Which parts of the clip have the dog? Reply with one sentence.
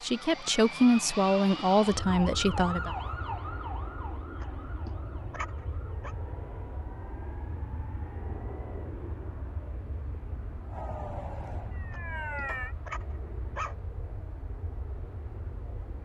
You can hear the dog from 4.4 to 6.2 s and from 11.9 to 13.8 s.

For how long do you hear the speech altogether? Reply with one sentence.
The speech can be heard for 3 seconds in total.